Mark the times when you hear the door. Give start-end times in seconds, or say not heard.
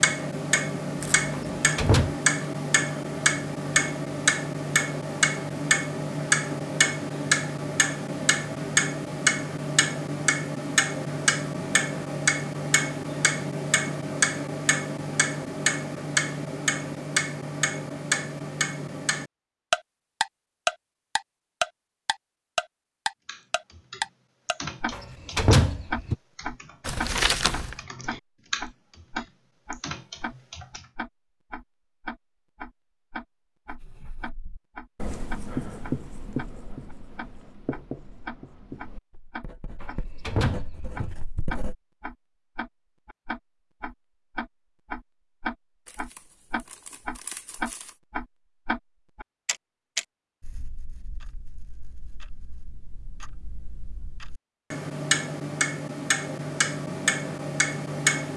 1.3-2.1, 24.9-26.1, 39.8-41.2.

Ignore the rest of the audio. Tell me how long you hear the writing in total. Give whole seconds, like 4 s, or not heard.
8 s.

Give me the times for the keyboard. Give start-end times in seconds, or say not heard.
23.2-30.9.